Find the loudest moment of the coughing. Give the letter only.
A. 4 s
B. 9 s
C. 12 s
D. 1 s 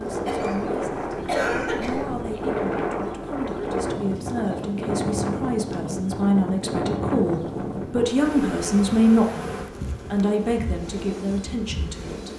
D.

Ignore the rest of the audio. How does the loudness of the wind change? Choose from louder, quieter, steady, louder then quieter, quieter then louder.
quieter.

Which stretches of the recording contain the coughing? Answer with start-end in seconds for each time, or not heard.
0.2-2.1.